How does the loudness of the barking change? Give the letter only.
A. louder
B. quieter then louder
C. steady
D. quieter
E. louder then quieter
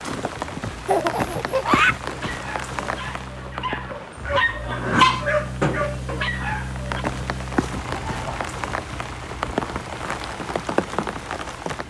E.